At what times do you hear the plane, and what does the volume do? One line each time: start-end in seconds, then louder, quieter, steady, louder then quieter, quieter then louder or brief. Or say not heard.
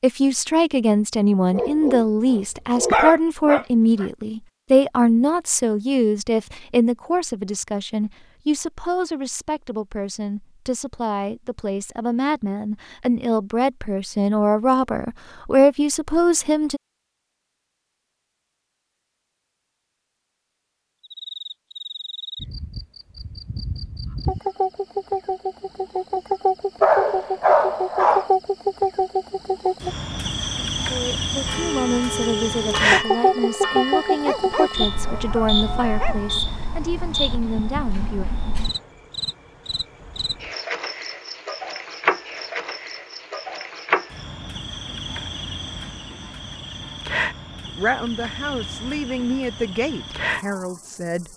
not heard.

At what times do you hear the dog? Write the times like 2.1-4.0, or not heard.
1.5-4.0, 26.8-28.3, 34.2-36.2.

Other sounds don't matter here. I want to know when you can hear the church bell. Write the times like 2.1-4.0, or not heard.
31.4-36.5.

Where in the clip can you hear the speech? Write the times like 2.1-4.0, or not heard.
0.0-16.8, 30.9-38.2, 47.6-51.3.